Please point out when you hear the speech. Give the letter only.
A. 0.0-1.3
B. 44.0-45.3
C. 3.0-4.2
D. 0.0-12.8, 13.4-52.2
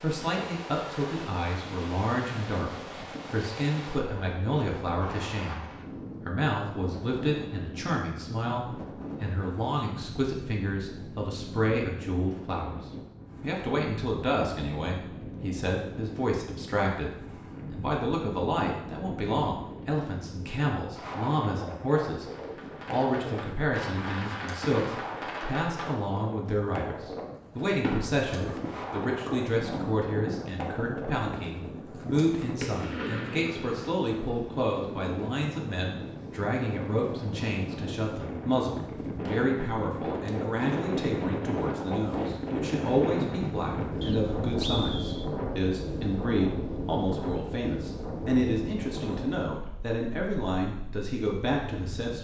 D.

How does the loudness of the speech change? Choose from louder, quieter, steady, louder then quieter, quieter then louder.
steady.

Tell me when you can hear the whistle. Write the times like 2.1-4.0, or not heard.
44.0-45.3.